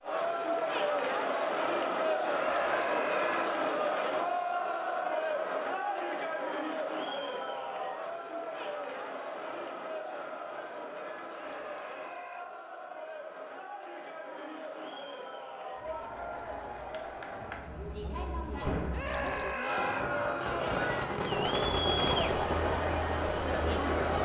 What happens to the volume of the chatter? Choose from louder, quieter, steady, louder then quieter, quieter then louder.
quieter then louder.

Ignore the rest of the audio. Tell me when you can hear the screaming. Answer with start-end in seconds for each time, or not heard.
2.4-3.5, 11.3-12.5, 18.9-20.1.